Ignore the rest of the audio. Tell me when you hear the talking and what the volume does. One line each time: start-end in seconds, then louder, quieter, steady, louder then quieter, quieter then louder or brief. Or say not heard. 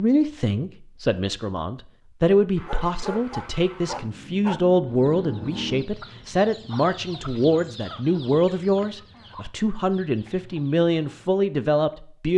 0.0-12.3 steady.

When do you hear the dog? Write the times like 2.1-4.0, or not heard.
2.6-4.6.